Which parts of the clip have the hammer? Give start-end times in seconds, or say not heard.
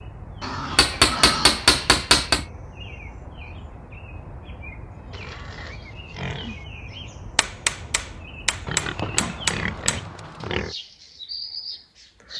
0.8-2.5, 7.3-10.0.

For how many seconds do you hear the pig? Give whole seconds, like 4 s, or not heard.
5 s.